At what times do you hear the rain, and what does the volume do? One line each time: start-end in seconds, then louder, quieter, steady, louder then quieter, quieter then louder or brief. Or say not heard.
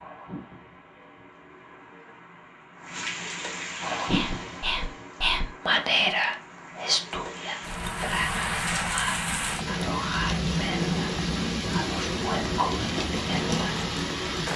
0.0-14.5 louder.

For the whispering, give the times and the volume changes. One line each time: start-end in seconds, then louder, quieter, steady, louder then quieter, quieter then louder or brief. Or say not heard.
4.0-13.8 quieter.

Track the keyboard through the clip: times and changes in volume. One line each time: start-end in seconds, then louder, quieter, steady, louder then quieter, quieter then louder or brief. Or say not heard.
not heard.